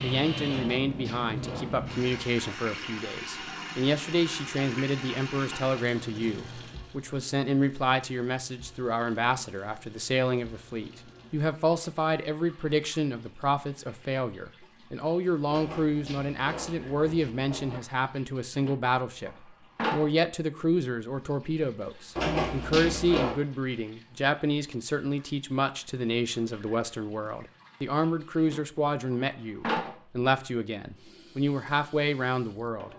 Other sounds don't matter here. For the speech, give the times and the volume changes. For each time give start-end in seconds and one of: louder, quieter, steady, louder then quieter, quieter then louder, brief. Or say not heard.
0.0-32.9 steady.